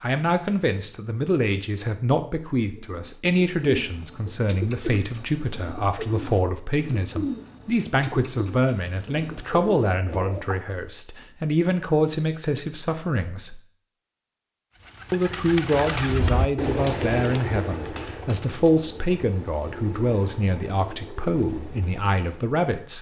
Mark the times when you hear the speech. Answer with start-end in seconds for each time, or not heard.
0.0-13.6, 15.1-22.9.